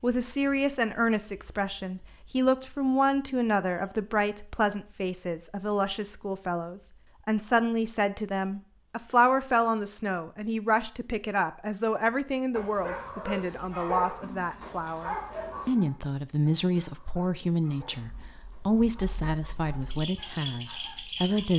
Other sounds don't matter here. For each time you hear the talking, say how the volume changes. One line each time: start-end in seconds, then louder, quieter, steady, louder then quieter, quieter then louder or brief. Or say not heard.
0.0-21.5 steady.